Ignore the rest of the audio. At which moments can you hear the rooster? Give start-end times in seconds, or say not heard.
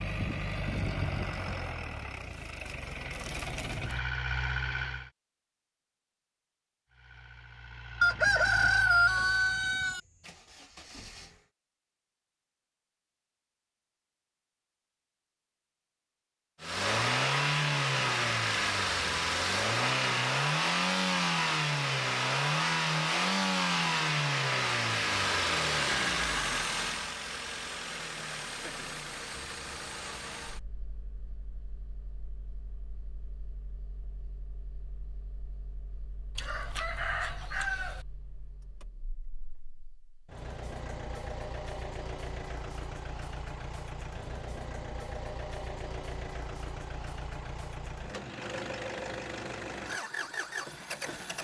8.0-10.0, 36.4-38.0.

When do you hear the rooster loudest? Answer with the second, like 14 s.
9 s.